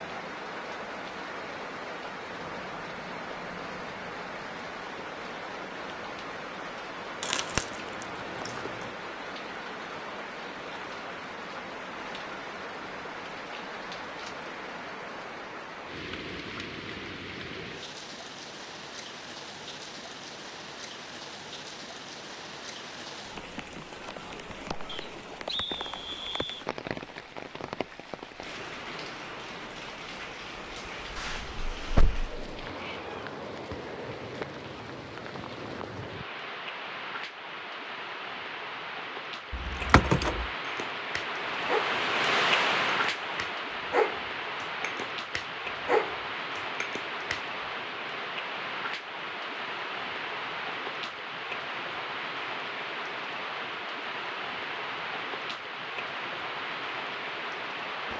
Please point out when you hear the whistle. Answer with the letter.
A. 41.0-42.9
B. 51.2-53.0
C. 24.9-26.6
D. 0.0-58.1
C.